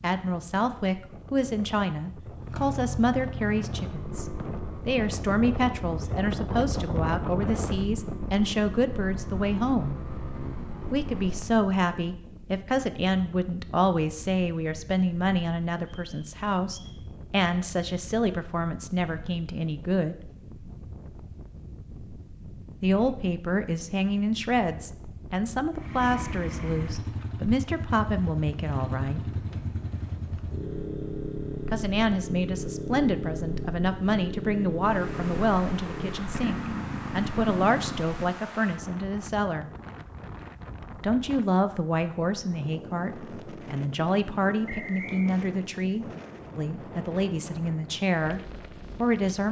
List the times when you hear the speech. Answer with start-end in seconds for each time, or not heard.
0.0-9.9, 10.9-20.2, 22.8-29.4, 31.6-39.7, 41.0-49.4.